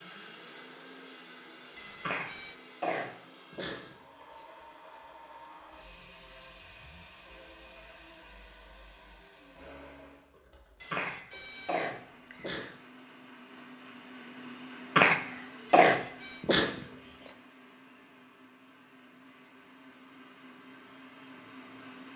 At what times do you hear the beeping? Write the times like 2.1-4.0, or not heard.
1.8-2.5, 10.8-12.7, 15.8-16.4.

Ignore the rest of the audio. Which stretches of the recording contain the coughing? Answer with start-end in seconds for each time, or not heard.
2.0-4.5, 10.9-12.7, 14.9-17.3.